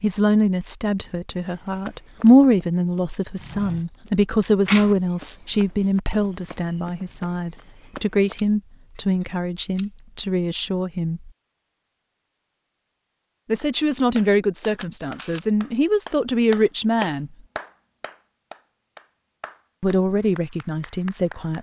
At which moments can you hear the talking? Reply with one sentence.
You can hear the talking from 0.0 to 11.3 s, from 13.4 to 17.3 s and from 19.8 to 21.5 s.